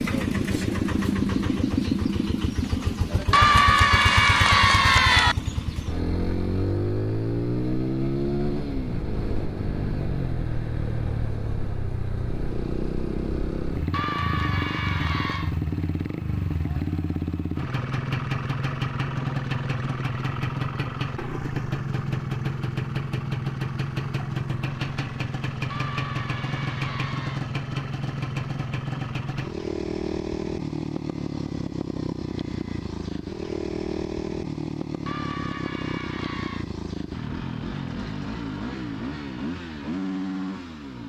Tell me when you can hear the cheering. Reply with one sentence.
You can hear the cheering from 3.3 to 5.3 s, from 13.9 to 15.6 s, from 25.7 to 27.4 s and from 35.0 to 36.6 s.